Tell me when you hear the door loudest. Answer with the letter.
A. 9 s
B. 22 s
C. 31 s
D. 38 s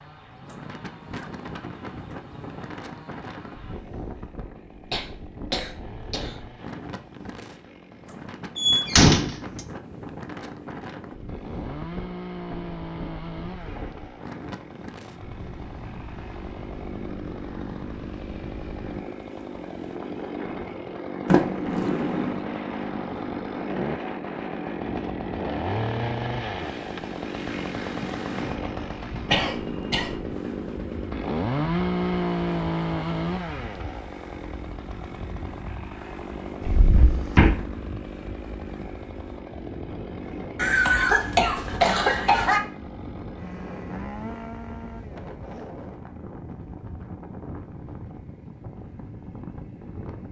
A.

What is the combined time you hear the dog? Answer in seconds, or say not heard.
not heard.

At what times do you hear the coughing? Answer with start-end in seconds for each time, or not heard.
4.9-6.3, 29.2-30.2, 40.5-42.6.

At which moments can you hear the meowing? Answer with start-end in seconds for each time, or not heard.
not heard.